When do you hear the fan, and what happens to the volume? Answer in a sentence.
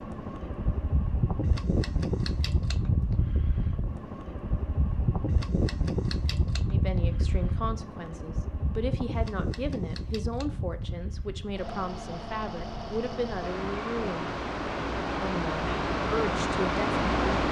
You can hear the fan from 0.0 to 17.4 s, getting quieter then louder.